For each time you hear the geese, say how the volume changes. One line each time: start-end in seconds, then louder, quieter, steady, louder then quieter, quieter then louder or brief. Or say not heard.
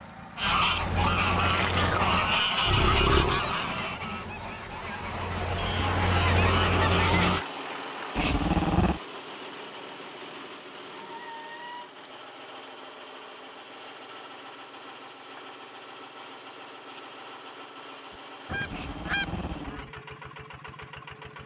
0.3-7.5 quieter then louder
18.4-19.9 brief.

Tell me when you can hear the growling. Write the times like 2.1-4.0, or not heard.
2.6-3.4, 8.2-9.0, 18.7-19.9.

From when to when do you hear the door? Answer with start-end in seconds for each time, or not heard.
not heard.